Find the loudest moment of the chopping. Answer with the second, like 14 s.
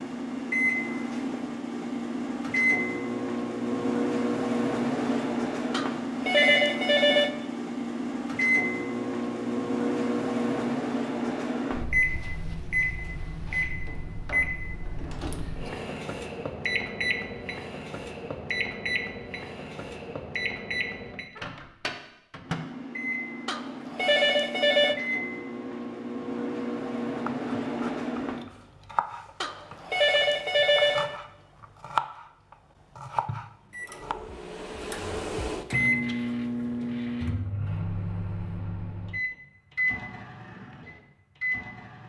32 s.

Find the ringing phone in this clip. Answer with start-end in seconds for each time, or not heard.
5.7-7.3, 23.4-24.9, 29.4-31.1.